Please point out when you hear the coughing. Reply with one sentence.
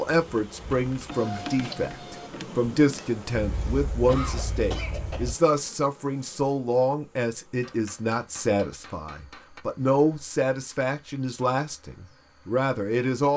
You can hear the coughing from 3.4 to 5.3 s.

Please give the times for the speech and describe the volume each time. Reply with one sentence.
You can hear the speech from 0.0 to 13.3 s, at a steady volume.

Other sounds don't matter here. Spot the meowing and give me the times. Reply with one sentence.
You can't hear the meowing here.